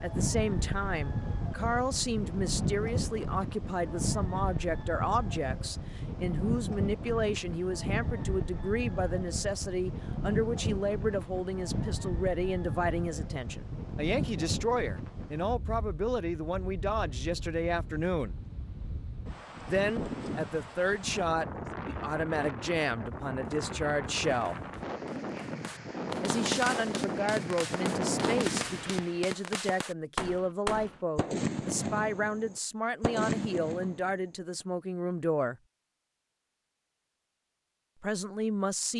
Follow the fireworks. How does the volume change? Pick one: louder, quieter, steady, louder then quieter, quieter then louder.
louder.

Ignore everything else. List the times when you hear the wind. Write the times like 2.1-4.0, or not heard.
0.0-29.3.